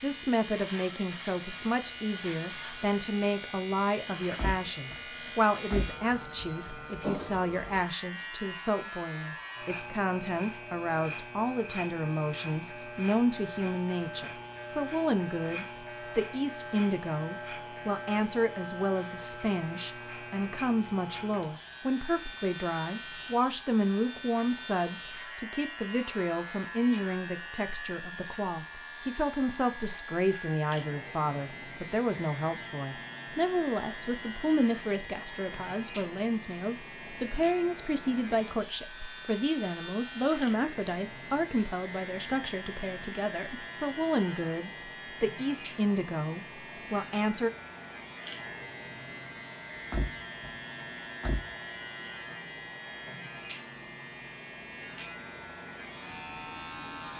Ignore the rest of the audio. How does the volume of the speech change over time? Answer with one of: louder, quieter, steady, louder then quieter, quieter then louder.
steady.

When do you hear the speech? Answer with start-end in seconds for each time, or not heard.
0.0-47.5.